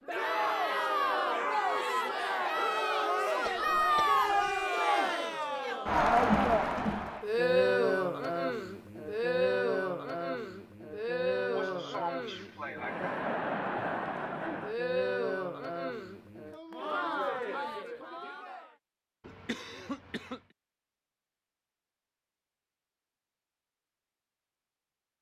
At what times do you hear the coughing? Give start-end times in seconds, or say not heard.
3.5-4.7, 11.6-13.1, 19.2-20.4.